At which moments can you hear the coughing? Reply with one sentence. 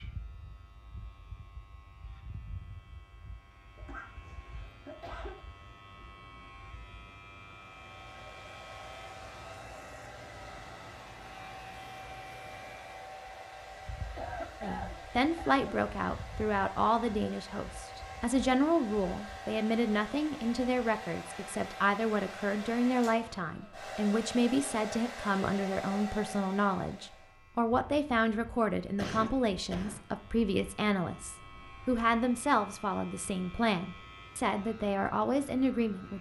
You can hear the coughing from 3.8 to 5.5 s, from 14.2 to 15.6 s and from 28.9 to 30.1 s.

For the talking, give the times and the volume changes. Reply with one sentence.
You can hear the talking from 14.6 to 36.1 s, at a steady volume.